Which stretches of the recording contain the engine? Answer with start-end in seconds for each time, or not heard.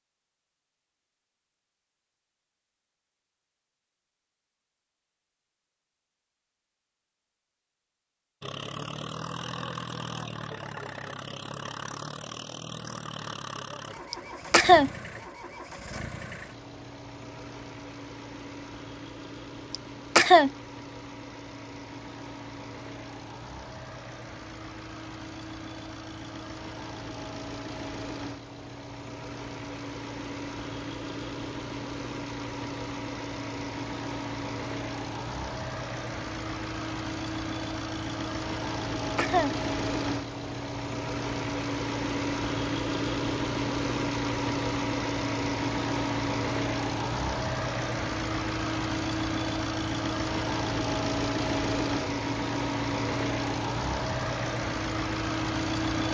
8.4-56.0.